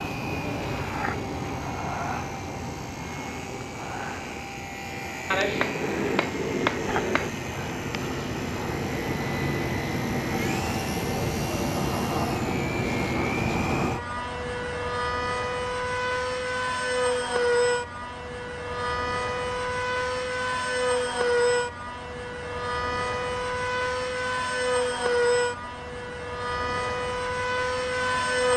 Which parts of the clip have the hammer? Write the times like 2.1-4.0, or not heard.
5.3-7.3.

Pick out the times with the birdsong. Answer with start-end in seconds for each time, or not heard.
not heard.